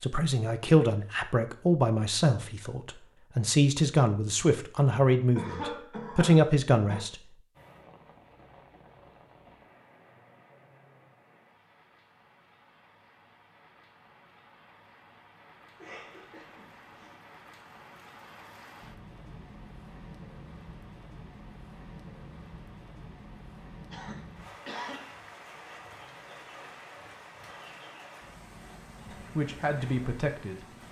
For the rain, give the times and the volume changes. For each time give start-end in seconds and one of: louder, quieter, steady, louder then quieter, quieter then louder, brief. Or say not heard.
7.5-30.8 louder.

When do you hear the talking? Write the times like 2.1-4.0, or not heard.
0.0-7.2, 29.4-30.8.